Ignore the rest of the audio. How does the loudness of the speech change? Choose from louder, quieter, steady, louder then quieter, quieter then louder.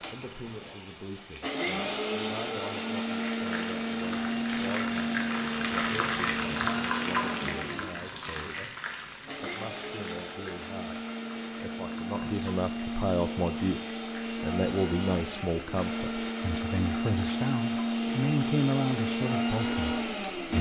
louder.